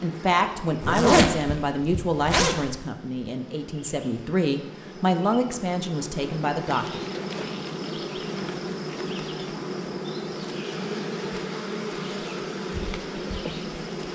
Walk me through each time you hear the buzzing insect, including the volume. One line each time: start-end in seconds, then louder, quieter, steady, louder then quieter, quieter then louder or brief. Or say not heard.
0.0-14.0 louder.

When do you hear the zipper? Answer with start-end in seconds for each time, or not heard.
0.8-2.8.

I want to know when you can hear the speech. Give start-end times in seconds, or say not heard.
0.0-7.0.